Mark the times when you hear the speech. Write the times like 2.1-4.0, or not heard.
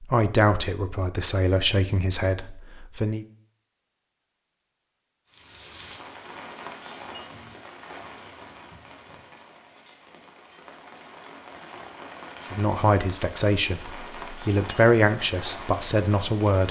0.0-3.2, 12.5-16.6.